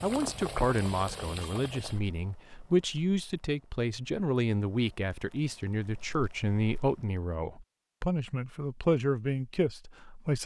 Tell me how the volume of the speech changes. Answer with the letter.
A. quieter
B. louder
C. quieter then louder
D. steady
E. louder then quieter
D.